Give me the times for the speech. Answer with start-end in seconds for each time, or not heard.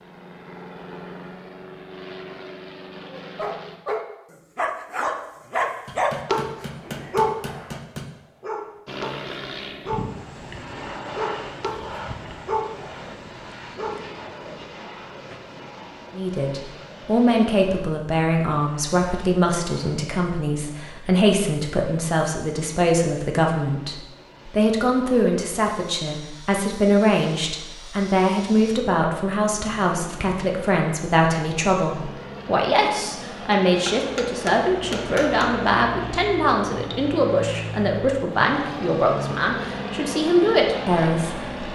16.1-41.7.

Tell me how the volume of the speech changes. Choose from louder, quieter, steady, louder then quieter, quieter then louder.
steady.